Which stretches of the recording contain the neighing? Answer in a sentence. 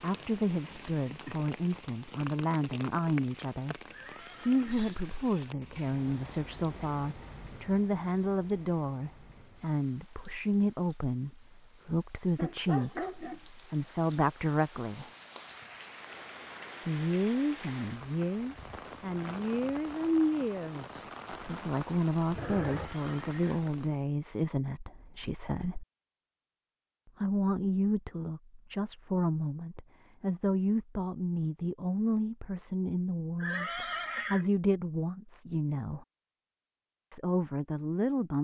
The neighing can be heard from 3.9 to 5.0 s, from 22.6 to 23.5 s and from 33.4 to 34.5 s.